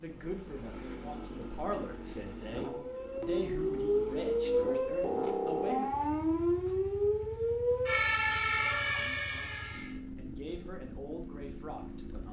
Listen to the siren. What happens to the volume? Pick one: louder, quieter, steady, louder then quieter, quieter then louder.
steady.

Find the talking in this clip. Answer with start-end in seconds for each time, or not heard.
0.0-5.9, 9.7-12.2.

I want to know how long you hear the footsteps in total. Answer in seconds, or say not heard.
not heard.